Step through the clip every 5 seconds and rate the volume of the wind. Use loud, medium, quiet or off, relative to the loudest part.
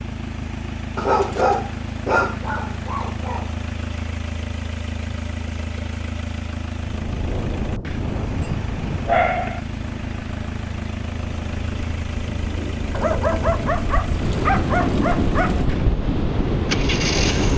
off, medium, medium, loud.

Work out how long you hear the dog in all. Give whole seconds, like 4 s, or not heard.
7 s.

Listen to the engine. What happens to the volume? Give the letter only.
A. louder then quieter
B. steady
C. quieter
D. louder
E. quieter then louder
B.